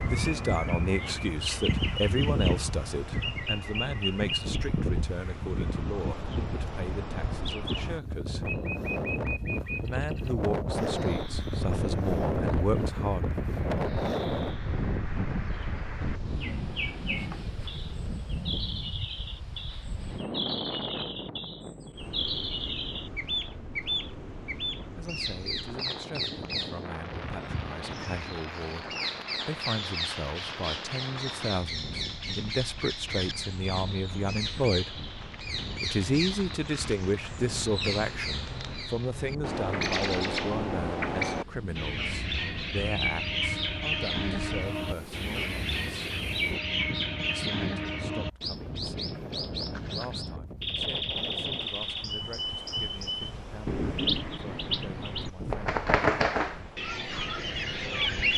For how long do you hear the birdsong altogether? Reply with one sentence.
You can hear the birdsong for 58 seconds altogether.